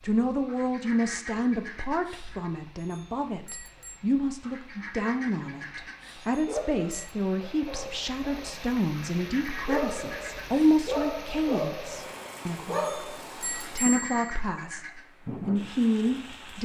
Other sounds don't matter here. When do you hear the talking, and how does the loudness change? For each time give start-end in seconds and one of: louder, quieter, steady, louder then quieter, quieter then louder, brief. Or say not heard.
0.0-16.6 steady.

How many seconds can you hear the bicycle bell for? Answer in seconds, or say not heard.
4 s.